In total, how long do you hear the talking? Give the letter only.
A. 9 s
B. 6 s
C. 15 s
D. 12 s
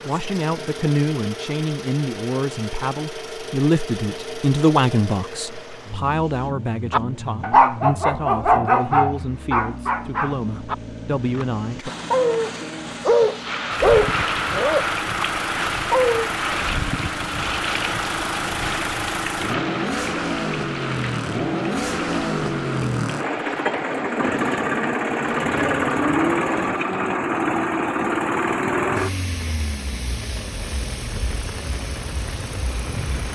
D.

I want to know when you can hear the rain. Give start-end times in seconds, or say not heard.
13.4-33.3.